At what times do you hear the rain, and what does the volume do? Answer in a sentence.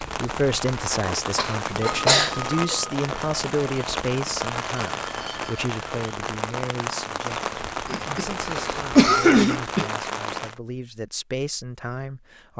You can hear the rain from 0.0 to 10.6 s, at a steady volume.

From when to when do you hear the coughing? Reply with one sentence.
The coughing can be heard from 1.4 to 2.5 s and from 7.8 to 9.8 s.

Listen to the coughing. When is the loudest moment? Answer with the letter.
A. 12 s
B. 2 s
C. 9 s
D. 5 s
C.